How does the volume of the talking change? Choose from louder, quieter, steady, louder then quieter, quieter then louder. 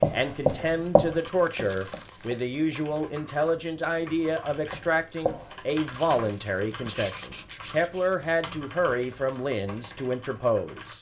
steady.